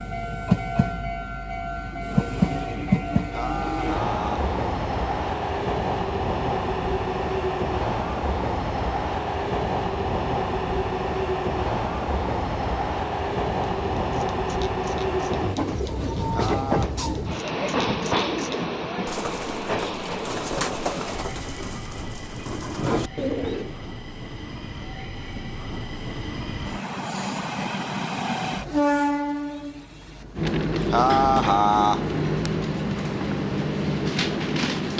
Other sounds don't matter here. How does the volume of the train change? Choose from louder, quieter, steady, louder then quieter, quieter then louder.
quieter then louder.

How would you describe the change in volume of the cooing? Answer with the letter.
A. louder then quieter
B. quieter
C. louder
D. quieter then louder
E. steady
C.